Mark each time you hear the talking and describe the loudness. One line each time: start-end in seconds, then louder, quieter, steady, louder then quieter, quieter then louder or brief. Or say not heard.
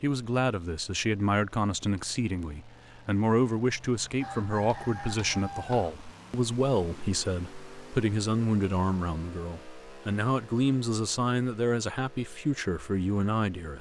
0.0-13.7 steady.